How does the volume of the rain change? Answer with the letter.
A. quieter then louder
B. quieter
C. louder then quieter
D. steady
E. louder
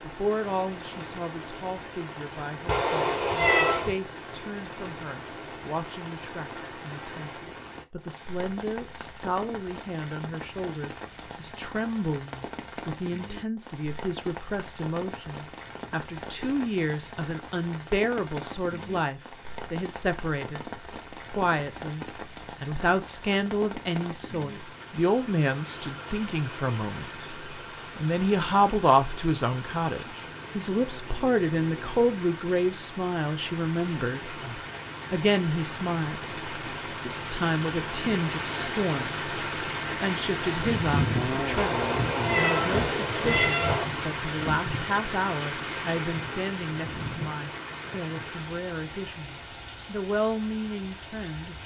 E.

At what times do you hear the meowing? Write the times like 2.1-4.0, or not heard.
2.6-4.0, 41.5-43.9.